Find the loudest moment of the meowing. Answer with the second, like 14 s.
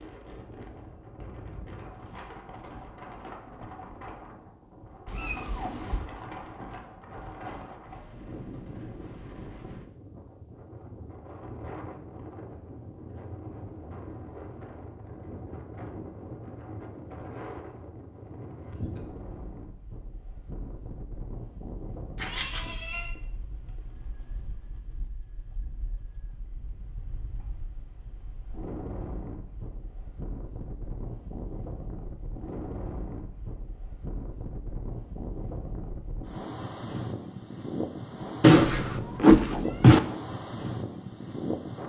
39 s.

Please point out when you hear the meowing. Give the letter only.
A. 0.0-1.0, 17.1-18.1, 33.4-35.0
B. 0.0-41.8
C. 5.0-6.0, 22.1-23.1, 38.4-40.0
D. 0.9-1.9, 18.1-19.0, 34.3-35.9
C.